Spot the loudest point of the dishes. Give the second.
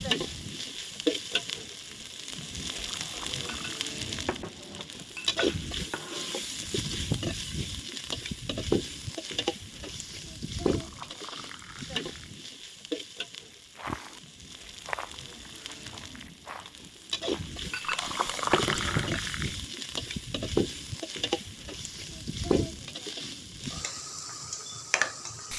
19 s.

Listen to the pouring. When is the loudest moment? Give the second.
19 s.